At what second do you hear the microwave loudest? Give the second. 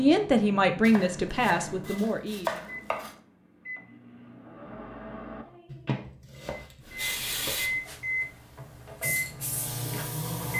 10 s.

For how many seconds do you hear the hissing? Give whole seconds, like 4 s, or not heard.
4 s.